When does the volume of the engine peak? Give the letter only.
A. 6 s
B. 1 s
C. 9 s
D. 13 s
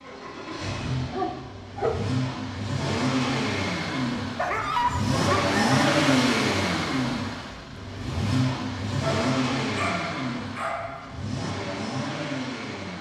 A.